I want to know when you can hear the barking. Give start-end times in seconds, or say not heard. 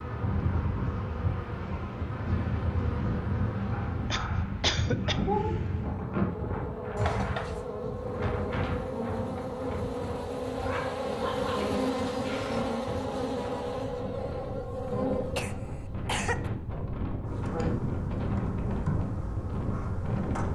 3.7-5.5, 10.6-12.7.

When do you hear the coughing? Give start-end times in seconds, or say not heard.
4.1-5.2, 7.0-7.6, 15.3-16.5.